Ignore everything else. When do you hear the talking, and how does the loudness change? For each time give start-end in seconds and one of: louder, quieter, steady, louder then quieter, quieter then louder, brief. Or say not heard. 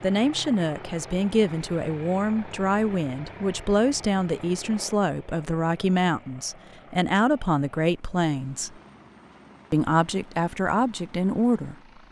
0.0-8.7 steady
9.7-11.8 brief.